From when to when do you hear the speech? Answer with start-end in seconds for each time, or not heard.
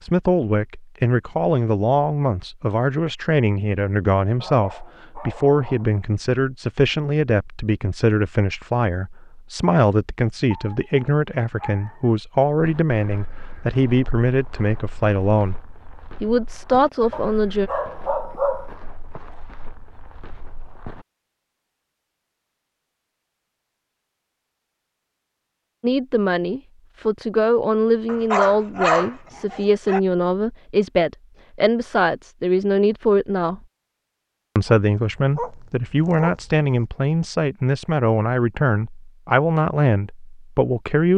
0.0-15.6, 16.2-17.7, 25.8-33.6, 34.5-41.1.